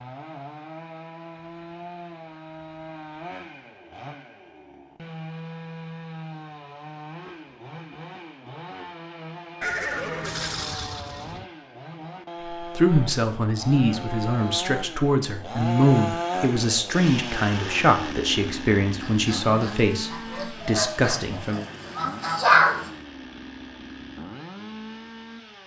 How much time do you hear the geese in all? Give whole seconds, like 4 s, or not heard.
4 s.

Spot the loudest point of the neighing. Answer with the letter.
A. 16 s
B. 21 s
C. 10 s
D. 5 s
C.